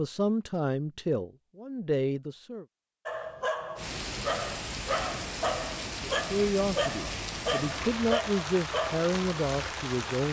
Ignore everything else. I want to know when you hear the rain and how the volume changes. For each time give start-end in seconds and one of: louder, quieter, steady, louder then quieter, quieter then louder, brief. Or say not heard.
3.8-10.2 steady.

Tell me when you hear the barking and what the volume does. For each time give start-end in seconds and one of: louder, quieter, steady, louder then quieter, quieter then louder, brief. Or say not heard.
3.0-9.0 steady.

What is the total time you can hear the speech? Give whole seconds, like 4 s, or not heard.
7 s.